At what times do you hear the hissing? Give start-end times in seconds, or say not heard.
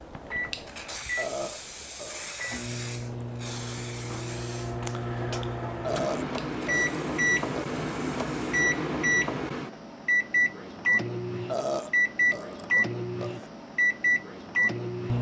0.0-8.7.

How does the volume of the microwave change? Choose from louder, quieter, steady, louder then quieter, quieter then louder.
louder.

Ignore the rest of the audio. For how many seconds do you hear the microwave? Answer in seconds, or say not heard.
15 s.